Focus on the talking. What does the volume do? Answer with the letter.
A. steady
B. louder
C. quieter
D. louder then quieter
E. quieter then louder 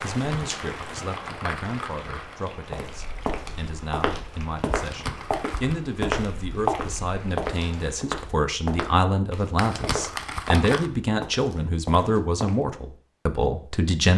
B.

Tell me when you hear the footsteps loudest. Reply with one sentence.
The loudest moment of the footsteps is at 7 seconds.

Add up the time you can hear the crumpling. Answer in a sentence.
You can hear the crumpling for 5 seconds altogether.